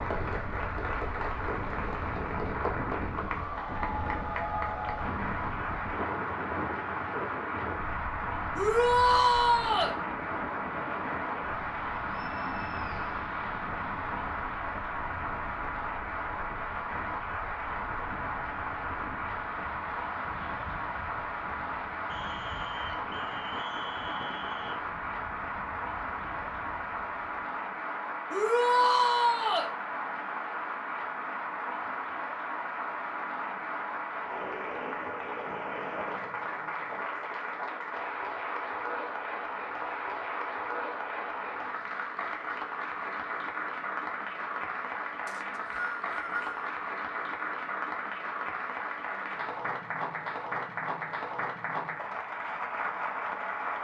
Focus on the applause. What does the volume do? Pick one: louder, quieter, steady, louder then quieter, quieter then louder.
steady.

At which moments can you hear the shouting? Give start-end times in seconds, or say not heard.
8.6-9.9, 28.3-29.7.